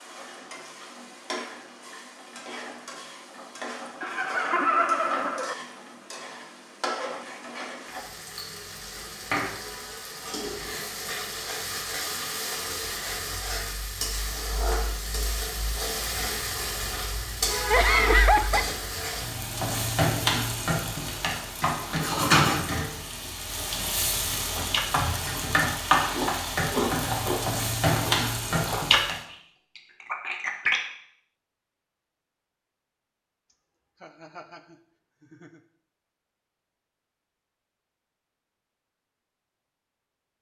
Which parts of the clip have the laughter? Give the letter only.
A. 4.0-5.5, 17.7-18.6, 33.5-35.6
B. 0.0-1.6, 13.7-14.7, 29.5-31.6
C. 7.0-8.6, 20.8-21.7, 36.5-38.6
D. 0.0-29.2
A.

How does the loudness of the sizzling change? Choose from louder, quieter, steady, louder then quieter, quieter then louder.
louder.